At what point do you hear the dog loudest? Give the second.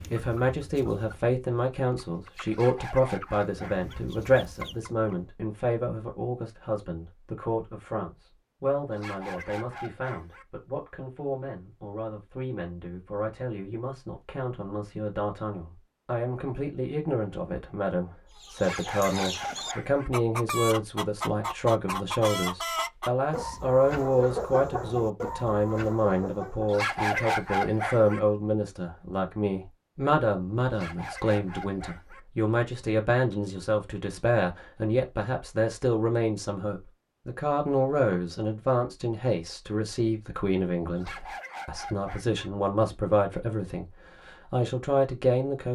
27 s.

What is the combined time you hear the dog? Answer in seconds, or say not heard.
9 s.